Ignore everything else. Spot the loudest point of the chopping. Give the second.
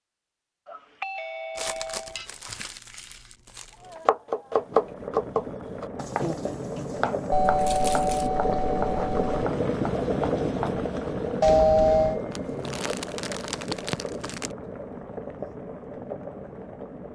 5 s.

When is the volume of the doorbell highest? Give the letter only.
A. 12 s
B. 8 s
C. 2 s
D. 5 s
A.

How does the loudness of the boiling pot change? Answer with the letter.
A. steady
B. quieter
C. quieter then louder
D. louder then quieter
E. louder
D.